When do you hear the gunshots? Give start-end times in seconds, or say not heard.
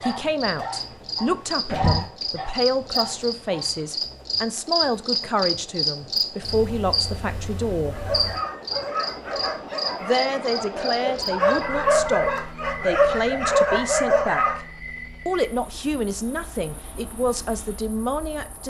not heard.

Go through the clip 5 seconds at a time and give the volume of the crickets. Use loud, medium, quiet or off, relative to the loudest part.
loud, loud, medium, quiet.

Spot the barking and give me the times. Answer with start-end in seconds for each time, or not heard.
0.0-3.6, 7.9-14.6.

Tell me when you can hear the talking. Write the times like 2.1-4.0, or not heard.
0.0-8.0, 10.0-14.6, 15.2-18.6.